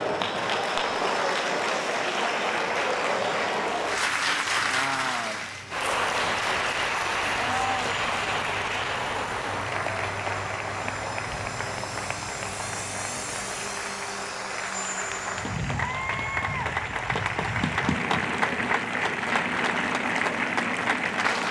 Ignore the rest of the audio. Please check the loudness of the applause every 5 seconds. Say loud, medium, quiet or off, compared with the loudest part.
loud, loud, medium, loud, loud.